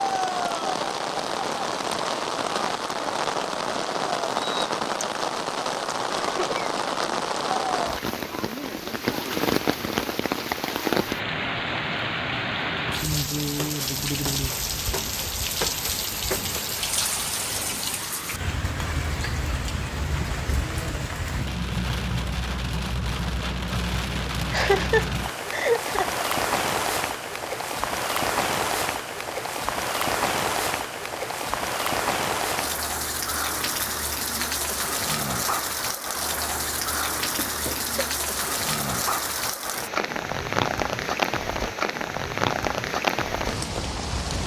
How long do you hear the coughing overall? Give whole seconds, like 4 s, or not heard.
3 s.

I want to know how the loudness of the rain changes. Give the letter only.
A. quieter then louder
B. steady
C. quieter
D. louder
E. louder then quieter
B.